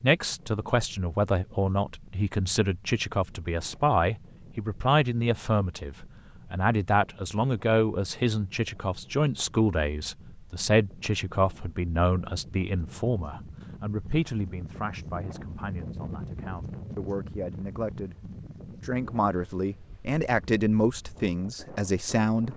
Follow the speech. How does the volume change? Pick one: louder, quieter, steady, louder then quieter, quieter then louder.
quieter then louder.